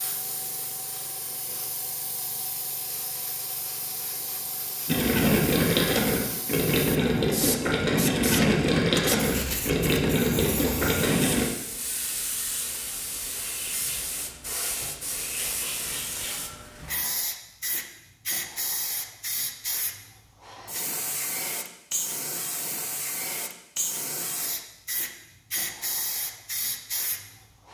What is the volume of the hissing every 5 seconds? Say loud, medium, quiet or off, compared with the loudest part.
medium, loud, loud, loud, loud, loud.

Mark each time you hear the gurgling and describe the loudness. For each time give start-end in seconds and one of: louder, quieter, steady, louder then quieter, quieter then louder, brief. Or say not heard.
4.8-11.4 steady.